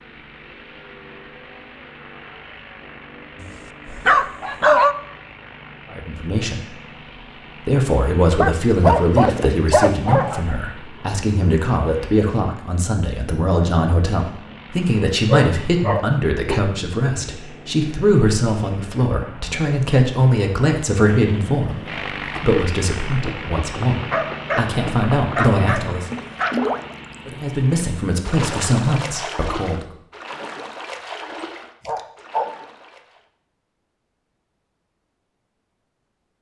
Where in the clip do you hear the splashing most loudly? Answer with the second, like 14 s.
27 s.